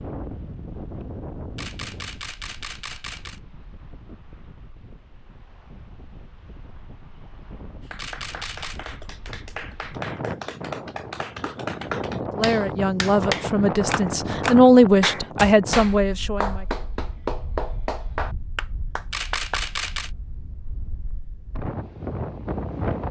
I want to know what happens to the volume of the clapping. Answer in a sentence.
The volume of the clapping goes up.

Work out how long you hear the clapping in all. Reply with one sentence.
The clapping can be heard for 12 seconds in total.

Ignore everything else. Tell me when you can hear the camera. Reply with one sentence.
You can hear the camera from 1.6 to 3.4 s, from 8.0 to 8.8 s and from 19.1 to 20.1 s.